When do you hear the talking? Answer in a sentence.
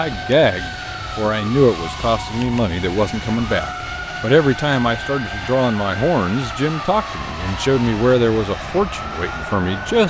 The talking can be heard from 0.0 to 10.0 s.